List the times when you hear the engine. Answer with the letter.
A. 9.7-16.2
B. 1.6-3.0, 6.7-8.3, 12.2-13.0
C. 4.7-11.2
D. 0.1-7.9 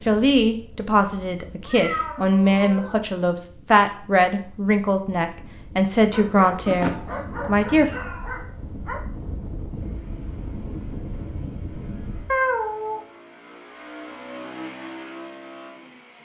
A.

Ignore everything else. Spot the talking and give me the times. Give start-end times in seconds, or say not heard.
0.1-7.9.